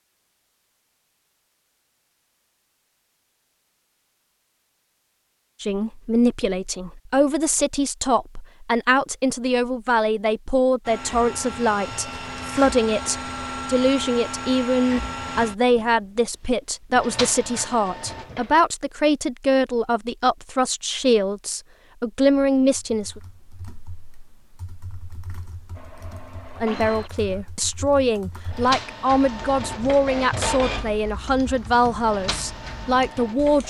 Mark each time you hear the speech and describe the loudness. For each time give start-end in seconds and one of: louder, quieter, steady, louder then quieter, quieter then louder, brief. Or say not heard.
5.6-23.2 steady
26.6-33.6 steady.